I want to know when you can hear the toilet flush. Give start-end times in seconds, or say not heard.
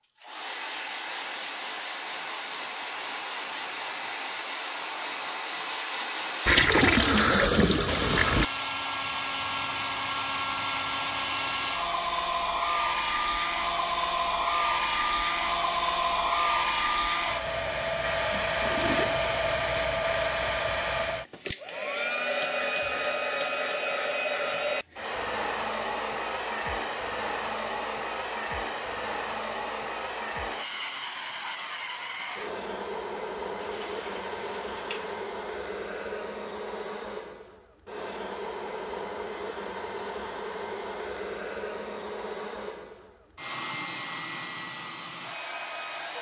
6.5-8.4, 18.4-19.2, 33.5-35.1.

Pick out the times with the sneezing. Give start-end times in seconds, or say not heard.
not heard.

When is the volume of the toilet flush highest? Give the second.
7 s.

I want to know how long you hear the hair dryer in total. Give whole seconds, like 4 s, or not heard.
46 s.